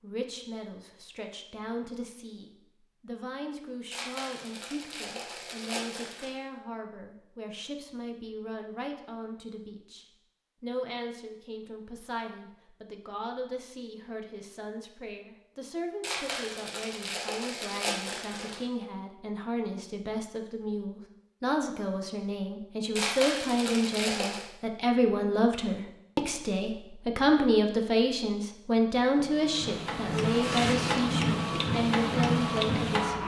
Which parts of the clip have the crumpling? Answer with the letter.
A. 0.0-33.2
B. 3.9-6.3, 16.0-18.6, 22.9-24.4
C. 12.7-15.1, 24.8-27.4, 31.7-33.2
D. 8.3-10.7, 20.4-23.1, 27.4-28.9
B.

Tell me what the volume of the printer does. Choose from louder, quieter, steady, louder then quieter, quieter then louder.
louder.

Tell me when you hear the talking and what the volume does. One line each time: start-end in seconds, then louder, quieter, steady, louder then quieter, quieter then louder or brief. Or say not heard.
0.0-33.2 louder.